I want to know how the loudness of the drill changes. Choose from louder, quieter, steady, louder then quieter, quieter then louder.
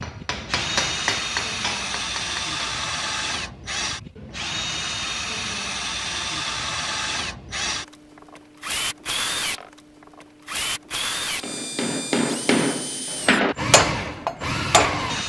steady.